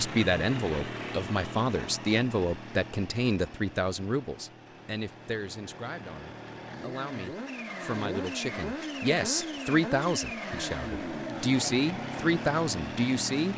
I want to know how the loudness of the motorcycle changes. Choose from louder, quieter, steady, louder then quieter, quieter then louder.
quieter then louder.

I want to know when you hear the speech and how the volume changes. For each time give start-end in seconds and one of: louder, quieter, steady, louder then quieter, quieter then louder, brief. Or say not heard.
0.0-13.5 quieter then louder.